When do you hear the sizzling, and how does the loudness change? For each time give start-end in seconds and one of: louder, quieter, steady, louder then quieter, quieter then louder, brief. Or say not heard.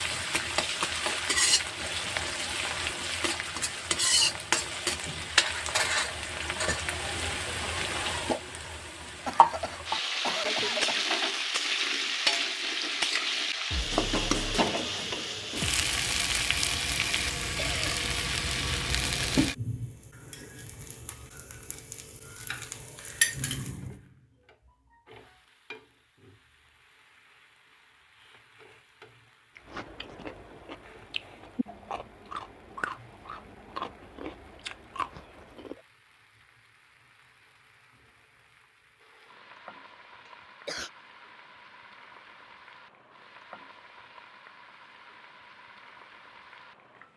0.0-47.1 quieter then louder.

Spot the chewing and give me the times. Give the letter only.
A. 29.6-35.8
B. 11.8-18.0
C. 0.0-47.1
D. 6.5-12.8
A.